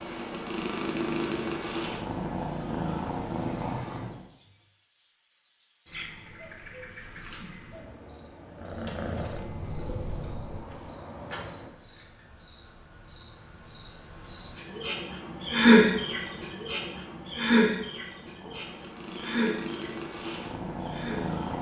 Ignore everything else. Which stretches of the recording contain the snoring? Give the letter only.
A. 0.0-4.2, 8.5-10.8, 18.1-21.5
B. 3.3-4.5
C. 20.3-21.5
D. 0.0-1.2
B.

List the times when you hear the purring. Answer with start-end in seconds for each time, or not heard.
0.0-4.2, 8.5-10.8, 18.1-21.5.